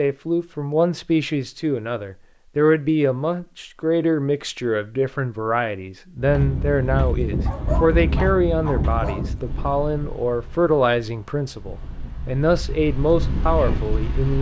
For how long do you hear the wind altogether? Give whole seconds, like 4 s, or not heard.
8 s.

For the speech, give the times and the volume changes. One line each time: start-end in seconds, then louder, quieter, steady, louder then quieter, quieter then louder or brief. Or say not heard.
0.0-14.3 steady.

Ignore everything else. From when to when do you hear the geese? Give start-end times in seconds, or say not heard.
not heard.